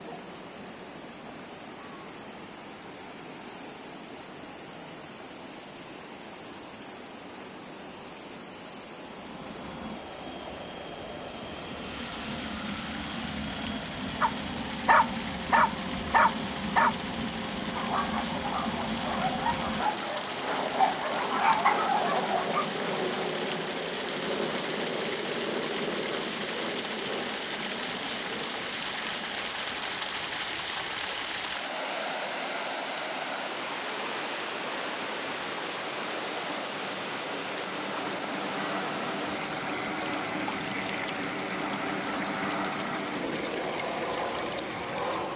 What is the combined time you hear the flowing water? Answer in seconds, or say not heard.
45 s.